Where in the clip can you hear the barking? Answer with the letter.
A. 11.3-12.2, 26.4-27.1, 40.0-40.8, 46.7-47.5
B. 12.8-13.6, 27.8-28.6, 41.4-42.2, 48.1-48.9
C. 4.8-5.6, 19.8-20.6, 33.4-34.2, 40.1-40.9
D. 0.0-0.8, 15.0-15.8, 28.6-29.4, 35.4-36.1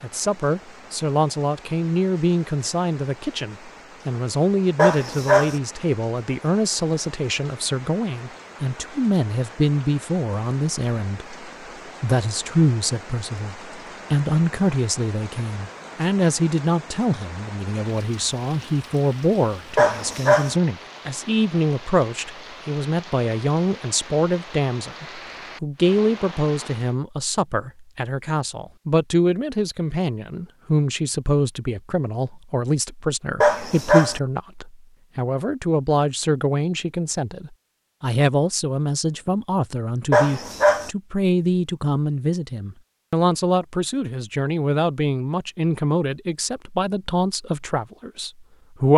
C.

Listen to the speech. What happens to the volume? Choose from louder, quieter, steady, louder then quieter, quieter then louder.
steady.